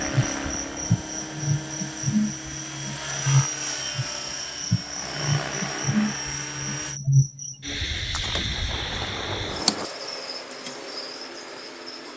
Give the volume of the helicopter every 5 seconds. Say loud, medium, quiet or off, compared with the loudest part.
loud, loud, off.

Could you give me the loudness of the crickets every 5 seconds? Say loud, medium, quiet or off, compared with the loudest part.
loud, loud, medium.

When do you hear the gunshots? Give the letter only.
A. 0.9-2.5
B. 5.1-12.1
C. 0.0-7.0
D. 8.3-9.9
D.